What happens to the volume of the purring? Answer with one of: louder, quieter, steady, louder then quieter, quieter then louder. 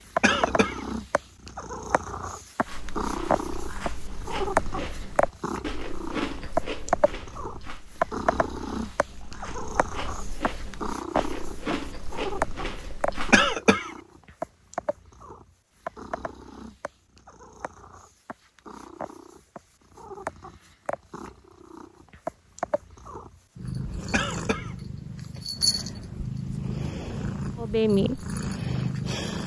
quieter then louder.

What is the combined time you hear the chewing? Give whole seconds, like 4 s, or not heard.
11 s.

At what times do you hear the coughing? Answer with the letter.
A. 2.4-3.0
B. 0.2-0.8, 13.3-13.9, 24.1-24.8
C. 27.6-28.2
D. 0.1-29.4
B.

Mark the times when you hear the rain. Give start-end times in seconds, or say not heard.
not heard.